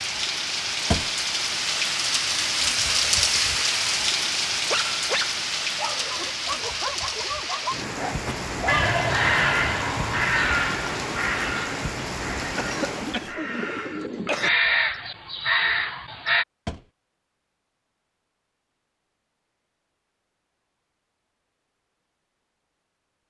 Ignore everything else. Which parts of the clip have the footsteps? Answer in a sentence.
You can't hear the footsteps here.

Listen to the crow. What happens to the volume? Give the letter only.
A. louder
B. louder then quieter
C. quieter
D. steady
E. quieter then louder
E.